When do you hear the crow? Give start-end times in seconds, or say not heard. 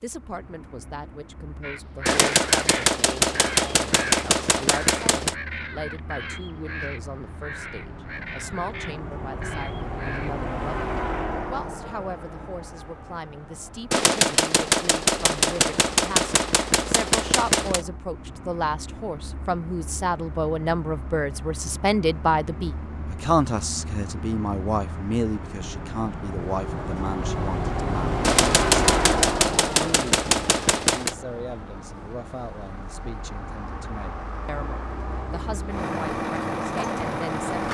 1.6-10.3.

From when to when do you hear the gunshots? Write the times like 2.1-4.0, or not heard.
2.0-5.3, 13.9-17.9, 28.2-31.1.